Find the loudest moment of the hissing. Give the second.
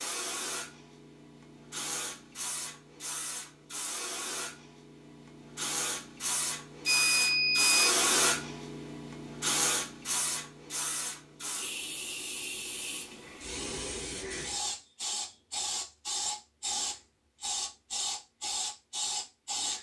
8 s.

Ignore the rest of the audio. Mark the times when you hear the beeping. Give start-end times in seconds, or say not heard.
6.8-8.0.